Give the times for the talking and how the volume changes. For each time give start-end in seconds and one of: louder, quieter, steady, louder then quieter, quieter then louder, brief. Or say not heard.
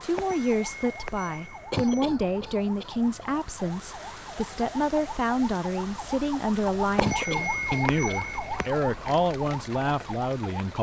0.0-10.7 steady.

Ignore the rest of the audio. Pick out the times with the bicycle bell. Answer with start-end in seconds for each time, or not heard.
0.1-2.0, 7.0-8.7.